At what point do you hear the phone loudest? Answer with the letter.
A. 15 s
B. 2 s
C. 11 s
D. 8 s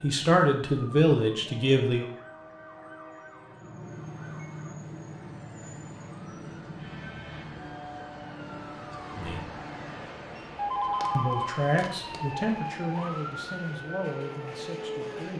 C.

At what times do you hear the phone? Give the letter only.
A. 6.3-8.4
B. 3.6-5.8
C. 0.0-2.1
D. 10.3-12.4
D.